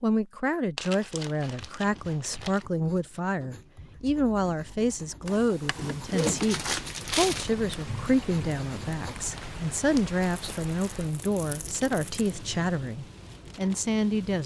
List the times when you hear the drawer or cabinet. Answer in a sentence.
You can hear the drawer or cabinet from 5.2 to 6.5 s.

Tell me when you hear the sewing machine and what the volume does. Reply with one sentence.
The sewing machine can't be heard in this clip.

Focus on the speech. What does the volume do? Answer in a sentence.
The volume of the speech stays about the same.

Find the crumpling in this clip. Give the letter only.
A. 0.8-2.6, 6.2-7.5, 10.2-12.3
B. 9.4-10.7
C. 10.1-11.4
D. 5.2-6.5
A.